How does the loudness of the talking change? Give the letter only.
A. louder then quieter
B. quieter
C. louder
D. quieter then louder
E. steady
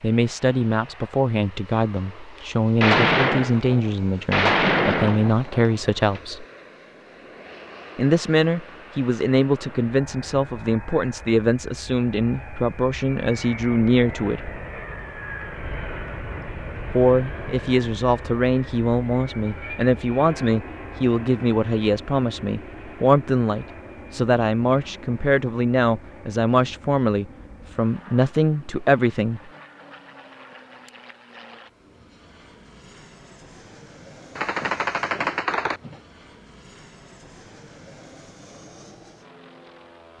E.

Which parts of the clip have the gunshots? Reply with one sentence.
You can hear the gunshots from 2.8 to 6.2 s and from 34.4 to 36.0 s.